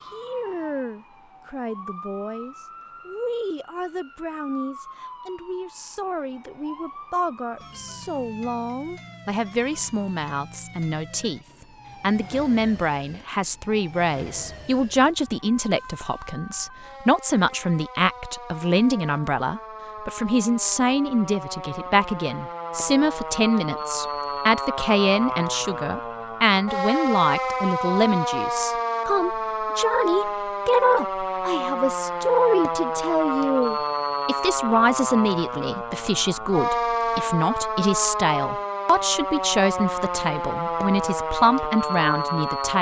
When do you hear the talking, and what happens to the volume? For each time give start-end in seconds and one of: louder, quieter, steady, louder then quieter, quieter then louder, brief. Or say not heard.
0.1-42.7 louder.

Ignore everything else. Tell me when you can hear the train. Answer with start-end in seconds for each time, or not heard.
not heard.